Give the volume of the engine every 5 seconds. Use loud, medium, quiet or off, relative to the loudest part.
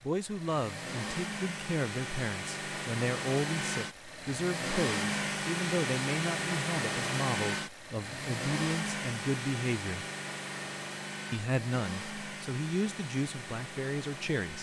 loud, loud, medium.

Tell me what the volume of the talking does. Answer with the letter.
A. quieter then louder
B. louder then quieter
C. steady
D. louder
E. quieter
C.